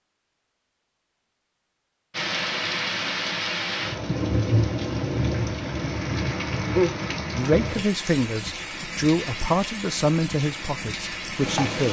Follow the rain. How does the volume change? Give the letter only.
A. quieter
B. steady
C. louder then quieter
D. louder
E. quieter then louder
A.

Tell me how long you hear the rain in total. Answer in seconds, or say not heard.
10 s.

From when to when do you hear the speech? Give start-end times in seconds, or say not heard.
7.3-11.8.